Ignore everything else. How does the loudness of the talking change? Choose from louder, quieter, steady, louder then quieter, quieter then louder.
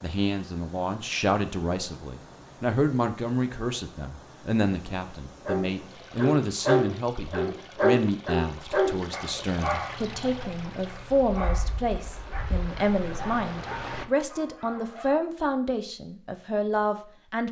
steady.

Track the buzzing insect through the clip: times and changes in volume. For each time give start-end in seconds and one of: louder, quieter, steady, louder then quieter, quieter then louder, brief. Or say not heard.
not heard.